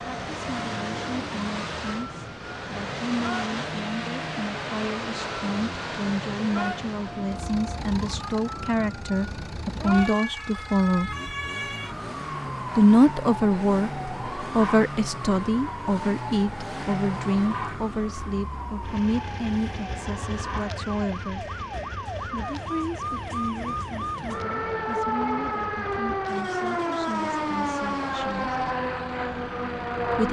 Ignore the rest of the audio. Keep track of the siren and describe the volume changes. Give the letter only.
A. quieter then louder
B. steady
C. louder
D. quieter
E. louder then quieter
C.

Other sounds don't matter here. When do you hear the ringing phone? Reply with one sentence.
The ringing phone can't be heard in this clip.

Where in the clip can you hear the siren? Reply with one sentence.
The siren can be heard from 0.0 to 30.2 s.